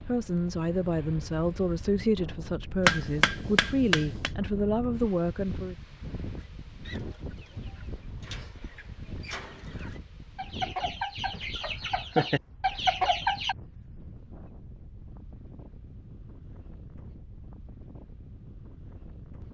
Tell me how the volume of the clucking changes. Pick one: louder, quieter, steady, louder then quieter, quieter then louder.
louder.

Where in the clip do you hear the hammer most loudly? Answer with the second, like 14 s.
3 s.